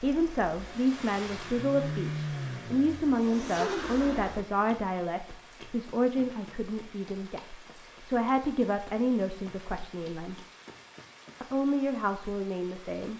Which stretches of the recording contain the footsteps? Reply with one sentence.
You can't hear the footsteps here.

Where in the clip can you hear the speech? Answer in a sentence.
You can hear the speech from 0.0 to 10.4 s and from 11.4 to 13.1 s.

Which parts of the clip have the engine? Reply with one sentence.
The engine can be heard from 0.0 to 4.5 s.